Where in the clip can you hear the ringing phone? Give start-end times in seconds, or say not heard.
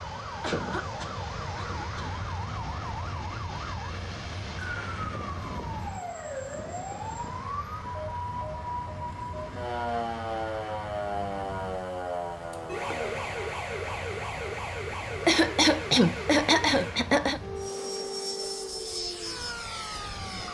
not heard.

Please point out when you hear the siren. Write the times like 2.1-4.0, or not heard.
0.0-20.4.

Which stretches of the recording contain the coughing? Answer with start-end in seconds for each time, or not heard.
0.4-2.1, 15.1-17.4.